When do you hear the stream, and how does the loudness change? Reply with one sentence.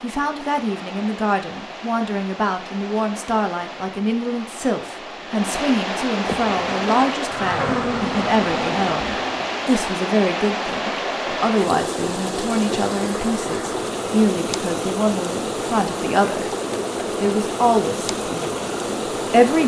You can hear the stream from 0.0 to 19.6 s, getting louder.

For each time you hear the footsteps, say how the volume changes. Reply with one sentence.
You can't hear the footsteps here.